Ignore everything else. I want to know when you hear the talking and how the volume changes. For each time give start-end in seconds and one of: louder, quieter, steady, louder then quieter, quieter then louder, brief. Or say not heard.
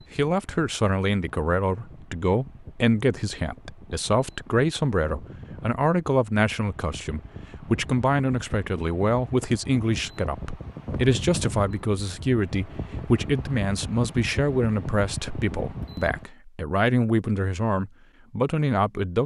0.1-19.2 steady.